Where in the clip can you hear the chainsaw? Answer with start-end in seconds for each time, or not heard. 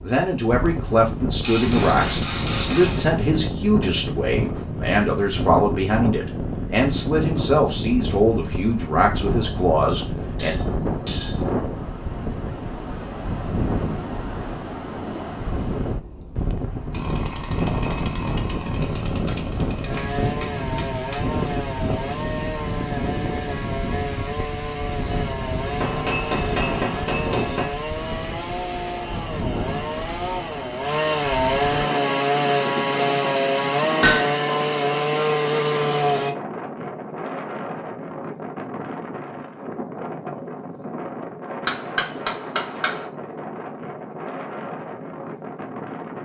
16.9-36.4.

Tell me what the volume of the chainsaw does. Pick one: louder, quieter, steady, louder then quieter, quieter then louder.
louder.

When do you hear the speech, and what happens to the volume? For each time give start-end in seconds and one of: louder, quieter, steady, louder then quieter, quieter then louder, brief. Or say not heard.
0.0-10.6 steady.